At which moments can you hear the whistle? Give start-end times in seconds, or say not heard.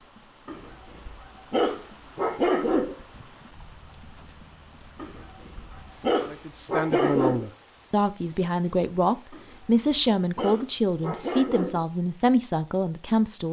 not heard.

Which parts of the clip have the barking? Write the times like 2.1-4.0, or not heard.
0.5-3.0, 5.0-7.5, 9.3-11.8.